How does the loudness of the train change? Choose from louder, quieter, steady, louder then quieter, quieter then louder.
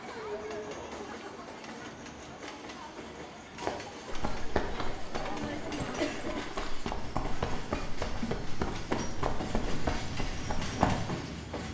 louder.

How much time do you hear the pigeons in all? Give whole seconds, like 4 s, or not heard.
not heard.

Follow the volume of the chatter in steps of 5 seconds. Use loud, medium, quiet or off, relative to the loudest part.
medium, loud, off.